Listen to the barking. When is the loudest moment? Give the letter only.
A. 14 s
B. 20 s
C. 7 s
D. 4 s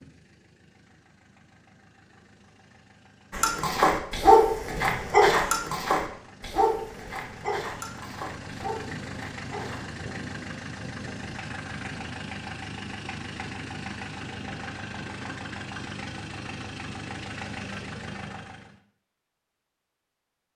D.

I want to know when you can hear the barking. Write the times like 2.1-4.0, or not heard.
3.3-9.8.